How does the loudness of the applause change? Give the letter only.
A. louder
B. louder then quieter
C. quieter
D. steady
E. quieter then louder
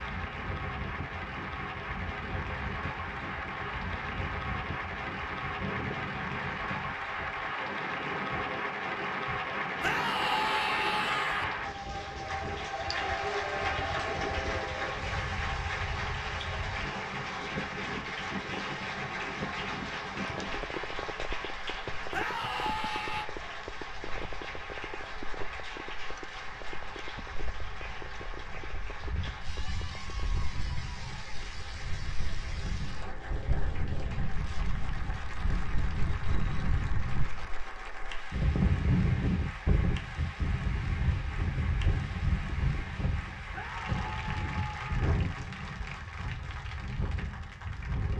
C.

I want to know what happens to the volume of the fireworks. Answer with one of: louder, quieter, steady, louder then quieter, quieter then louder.
quieter.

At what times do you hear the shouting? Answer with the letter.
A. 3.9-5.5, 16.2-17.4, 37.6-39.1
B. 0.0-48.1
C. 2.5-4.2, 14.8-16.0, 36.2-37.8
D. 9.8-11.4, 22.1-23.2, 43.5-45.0
D.